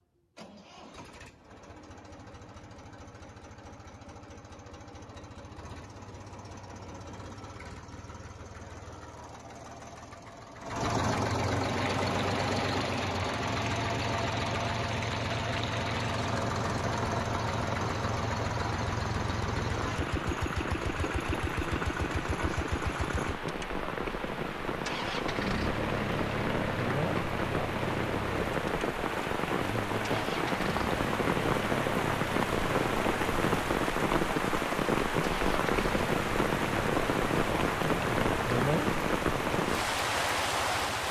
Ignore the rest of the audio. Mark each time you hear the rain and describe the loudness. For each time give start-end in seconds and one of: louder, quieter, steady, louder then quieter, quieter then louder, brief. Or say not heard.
11.6-41.0 louder.